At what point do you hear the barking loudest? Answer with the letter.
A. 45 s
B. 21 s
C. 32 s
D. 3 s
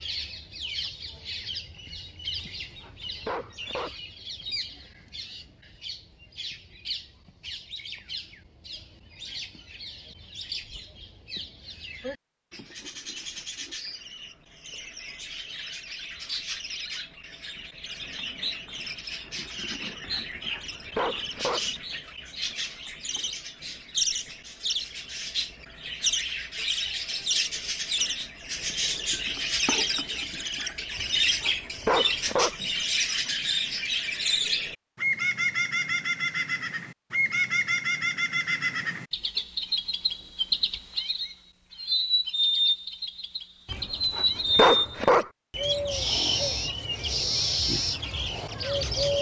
A.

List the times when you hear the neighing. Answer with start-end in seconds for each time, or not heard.
not heard.